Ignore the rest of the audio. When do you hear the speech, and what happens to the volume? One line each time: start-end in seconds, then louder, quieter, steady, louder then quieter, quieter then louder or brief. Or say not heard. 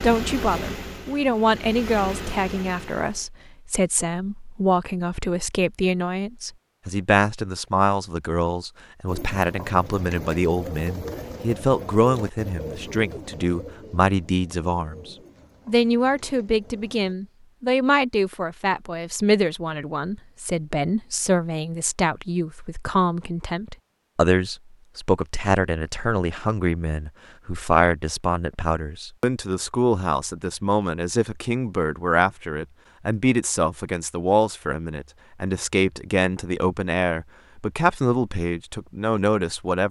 0.0-39.8 steady.